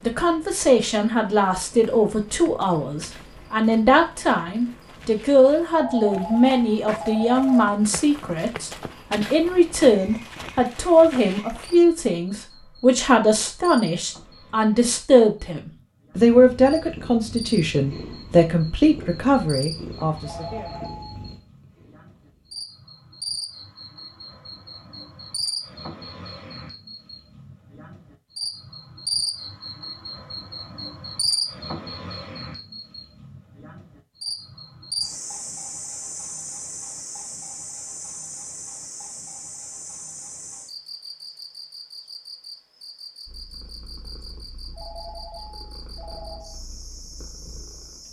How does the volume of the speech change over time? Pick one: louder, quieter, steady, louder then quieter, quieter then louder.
steady.